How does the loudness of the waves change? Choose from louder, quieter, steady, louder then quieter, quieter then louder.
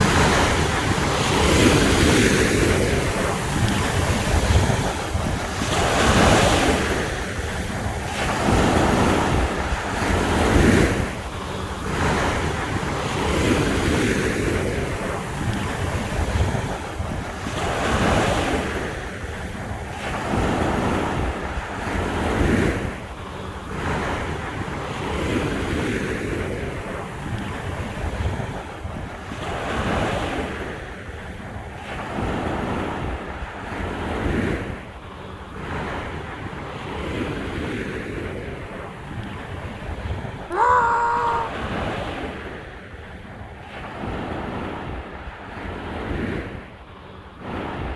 quieter.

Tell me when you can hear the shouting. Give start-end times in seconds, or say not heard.
40.5-41.5.